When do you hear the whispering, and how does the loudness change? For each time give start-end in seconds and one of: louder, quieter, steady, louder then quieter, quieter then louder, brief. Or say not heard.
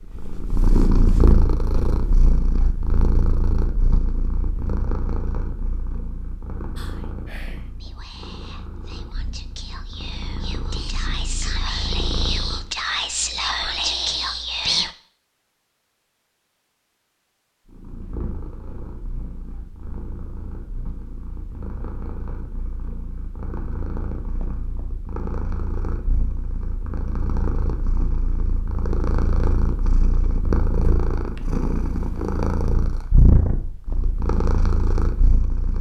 6.8-14.9 louder.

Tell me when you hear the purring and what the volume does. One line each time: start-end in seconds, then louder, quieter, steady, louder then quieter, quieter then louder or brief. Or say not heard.
0.0-12.7 quieter then louder
17.6-35.7 louder.